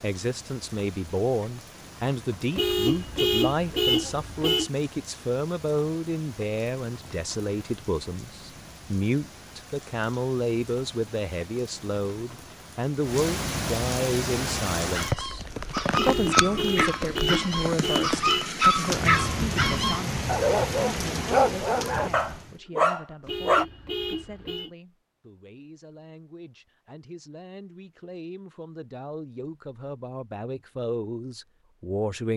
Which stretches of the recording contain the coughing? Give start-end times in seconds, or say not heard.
not heard.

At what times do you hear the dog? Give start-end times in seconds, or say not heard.
14.8-23.6.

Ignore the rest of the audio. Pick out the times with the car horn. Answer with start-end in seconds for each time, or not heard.
2.5-4.7, 15.9-18.4, 23.2-24.7.